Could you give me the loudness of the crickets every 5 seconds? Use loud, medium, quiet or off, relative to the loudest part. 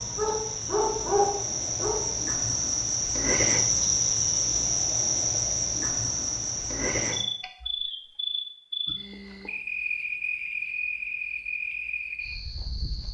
loud, loud, medium.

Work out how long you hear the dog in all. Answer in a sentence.
The dog can be heard for 2 seconds in total.